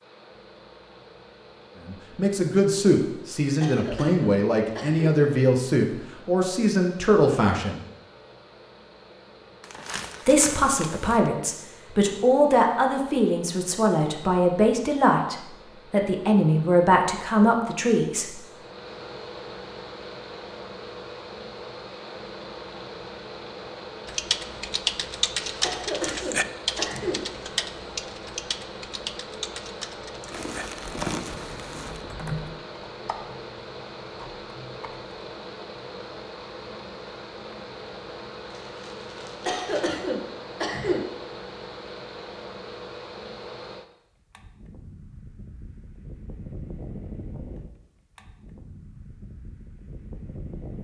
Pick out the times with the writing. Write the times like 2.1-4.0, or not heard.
not heard.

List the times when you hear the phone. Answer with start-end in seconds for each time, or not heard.
not heard.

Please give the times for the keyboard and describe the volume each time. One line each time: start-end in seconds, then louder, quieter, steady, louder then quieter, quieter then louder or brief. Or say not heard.
24.1-35.1 quieter.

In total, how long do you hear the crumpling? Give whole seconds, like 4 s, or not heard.
5 s.